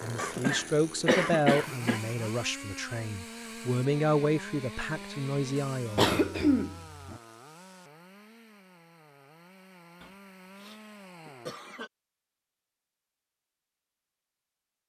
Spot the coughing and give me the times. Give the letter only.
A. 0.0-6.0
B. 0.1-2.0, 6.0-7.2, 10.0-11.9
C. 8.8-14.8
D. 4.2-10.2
B.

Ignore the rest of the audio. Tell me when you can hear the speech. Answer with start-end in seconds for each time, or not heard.
0.0-6.0.